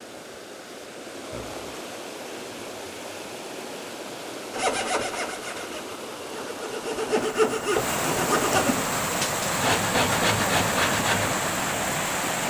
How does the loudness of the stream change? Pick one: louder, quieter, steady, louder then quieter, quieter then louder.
louder.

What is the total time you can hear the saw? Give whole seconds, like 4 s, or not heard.
7 s.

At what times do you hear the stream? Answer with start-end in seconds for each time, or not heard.
0.0-12.4.